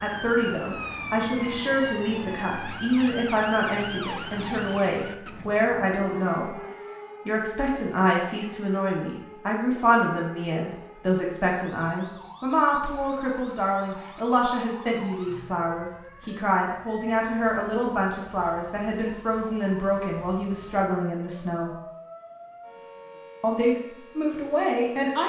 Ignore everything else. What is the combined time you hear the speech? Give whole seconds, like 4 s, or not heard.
23 s.